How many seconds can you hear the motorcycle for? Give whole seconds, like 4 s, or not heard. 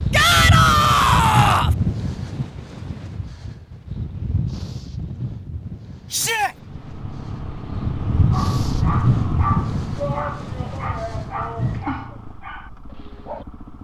7 s.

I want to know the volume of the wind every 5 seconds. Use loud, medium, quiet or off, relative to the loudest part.
loud, loud, medium.